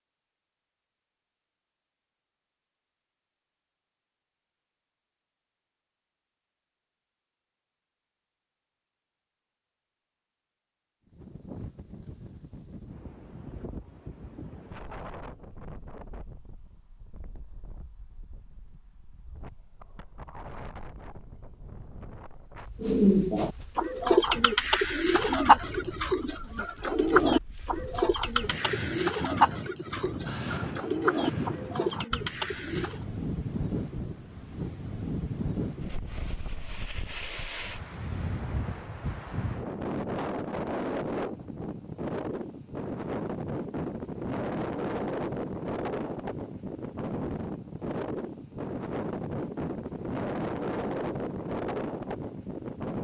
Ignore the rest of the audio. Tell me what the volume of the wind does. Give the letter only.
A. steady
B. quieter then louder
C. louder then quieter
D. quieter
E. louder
E.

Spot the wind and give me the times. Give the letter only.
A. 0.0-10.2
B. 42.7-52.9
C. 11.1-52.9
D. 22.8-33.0
C.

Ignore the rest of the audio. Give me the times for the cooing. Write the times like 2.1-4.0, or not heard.
22.8-33.0.